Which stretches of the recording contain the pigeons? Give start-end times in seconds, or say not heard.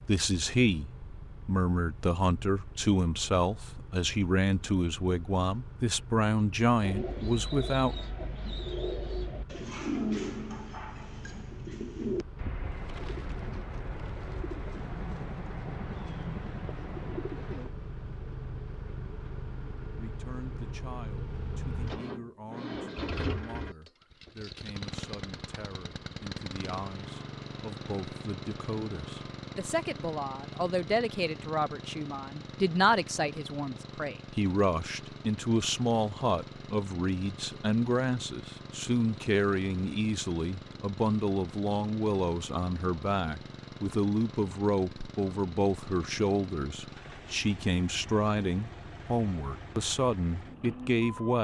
6.8-17.7.